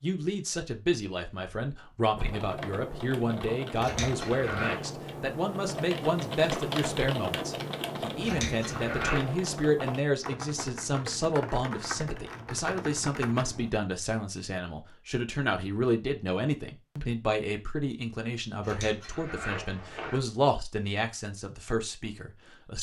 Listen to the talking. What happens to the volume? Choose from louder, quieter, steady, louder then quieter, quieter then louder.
steady.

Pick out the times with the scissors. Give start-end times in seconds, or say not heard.
3.8-4.8, 8.2-9.2, 18.6-20.2.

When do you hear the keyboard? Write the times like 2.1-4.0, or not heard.
2.1-13.7.